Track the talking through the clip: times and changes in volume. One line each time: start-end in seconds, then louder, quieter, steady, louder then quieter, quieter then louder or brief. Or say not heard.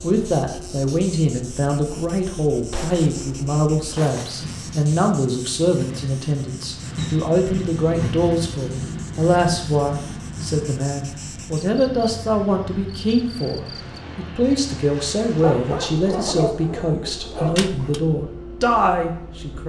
0.0-19.6 steady.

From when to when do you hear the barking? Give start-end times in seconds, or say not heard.
15.4-18.0.